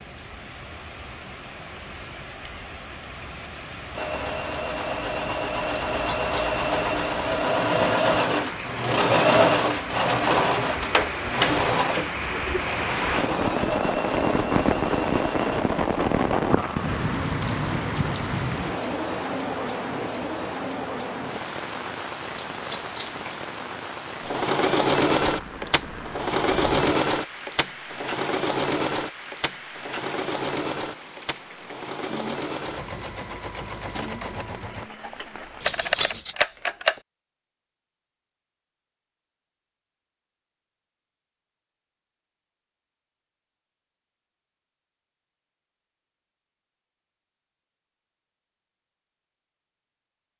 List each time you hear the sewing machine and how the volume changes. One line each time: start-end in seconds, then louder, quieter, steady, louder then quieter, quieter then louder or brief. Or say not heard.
4.0-15.7 louder then quieter
24.2-34.9 quieter.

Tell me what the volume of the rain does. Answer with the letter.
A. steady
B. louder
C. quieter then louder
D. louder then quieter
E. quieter
D.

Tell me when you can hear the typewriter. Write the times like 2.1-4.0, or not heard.
35.0-37.0.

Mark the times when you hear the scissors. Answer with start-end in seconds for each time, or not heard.
5.9-6.5, 22.3-23.6, 35.6-36.4.